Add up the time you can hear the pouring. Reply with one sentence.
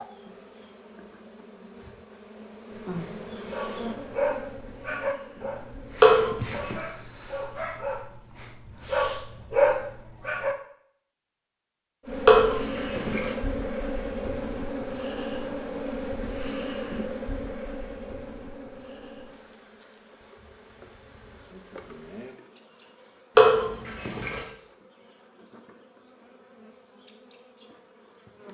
You can hear the pouring for 3 seconds altogether.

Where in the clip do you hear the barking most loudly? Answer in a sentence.
The volume of the barking peaks at 10 seconds.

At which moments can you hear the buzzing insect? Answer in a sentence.
You can hear the buzzing insect from 0.0 to 6.2 s and from 12.1 to 28.5 s.